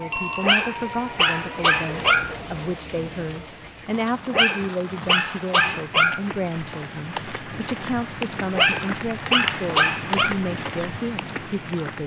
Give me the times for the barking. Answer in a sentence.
The barking can be heard from 0.4 to 2.4 s, from 4.3 to 6.2 s and from 8.6 to 10.3 s.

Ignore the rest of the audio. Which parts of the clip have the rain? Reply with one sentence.
You can hear the rain from 0.0 to 12.0 s.